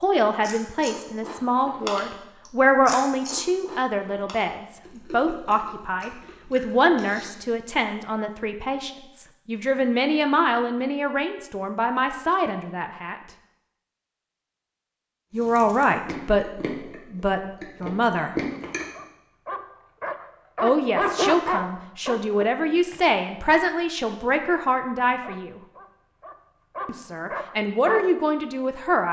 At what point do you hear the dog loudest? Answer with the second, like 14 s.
21 s.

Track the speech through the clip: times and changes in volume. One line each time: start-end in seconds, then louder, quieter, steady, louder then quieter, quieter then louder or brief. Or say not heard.
0.0-13.2 steady
15.3-16.4 brief
17.1-18.4 brief
20.6-25.6 steady
26.9-29.0 brief.